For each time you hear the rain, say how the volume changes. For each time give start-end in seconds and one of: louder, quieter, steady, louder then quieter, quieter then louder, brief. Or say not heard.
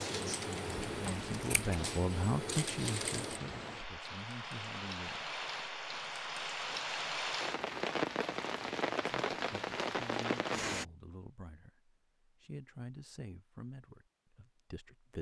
0.0-10.8 louder.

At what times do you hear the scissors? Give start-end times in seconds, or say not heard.
0.7-1.8.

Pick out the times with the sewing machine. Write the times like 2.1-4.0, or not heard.
0.0-3.4.